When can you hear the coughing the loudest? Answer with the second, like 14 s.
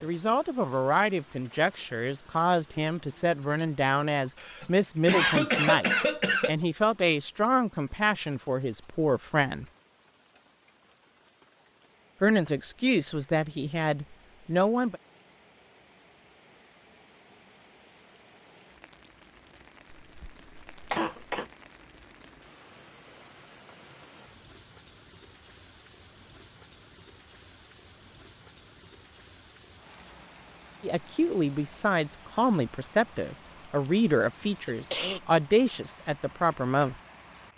5 s.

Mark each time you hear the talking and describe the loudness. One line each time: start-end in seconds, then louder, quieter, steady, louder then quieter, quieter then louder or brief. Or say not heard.
0.0-9.7 steady
12.2-15.0 brief
30.8-37.0 steady.